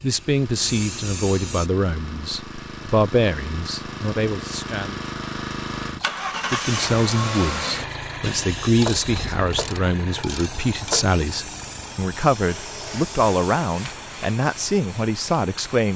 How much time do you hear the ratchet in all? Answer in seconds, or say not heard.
2 s.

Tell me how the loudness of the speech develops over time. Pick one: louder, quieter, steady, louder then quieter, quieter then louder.
steady.